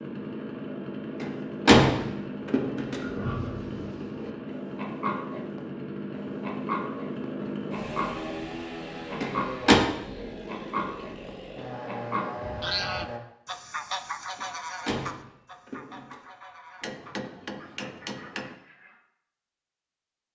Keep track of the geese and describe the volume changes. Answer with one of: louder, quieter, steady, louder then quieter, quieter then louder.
quieter.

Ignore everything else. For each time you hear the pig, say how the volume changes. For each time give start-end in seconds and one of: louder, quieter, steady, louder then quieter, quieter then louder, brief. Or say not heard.
2.9-12.7 steady.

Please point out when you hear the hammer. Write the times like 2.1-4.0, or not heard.
16.8-18.6.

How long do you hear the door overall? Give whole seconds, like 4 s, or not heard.
4 s.